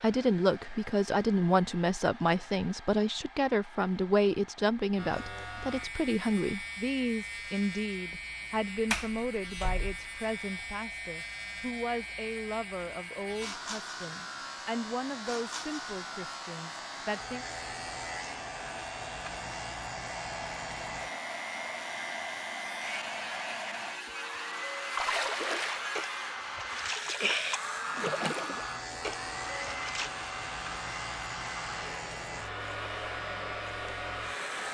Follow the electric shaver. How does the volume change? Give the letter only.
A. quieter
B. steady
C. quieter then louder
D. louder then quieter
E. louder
B.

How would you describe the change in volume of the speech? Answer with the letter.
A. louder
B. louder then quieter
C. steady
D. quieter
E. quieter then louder
D.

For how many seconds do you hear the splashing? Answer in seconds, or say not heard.
5 s.